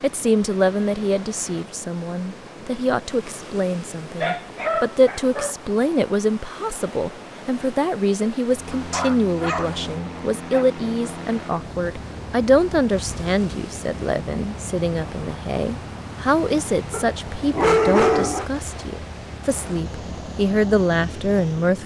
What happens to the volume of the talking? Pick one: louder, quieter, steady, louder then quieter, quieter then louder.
steady.